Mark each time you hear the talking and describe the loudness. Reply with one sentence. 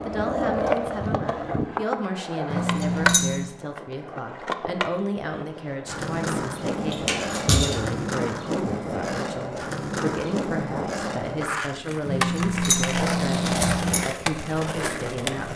You can hear the talking from 0.0 to 15.5 s, at a steady volume.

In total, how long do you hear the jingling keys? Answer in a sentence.
You can hear the jingling keys for 4 seconds altogether.